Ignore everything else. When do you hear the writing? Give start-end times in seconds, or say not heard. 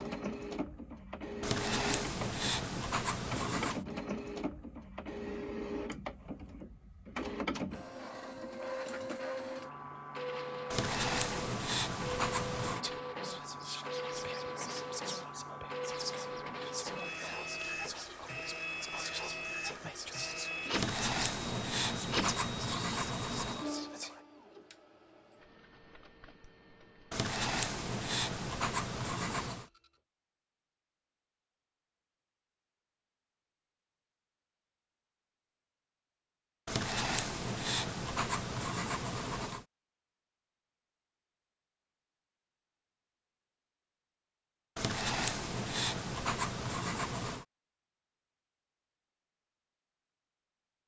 1.4-3.9, 10.7-12.8, 20.7-23.6, 27.1-29.6, 36.6-39.6, 44.8-47.5.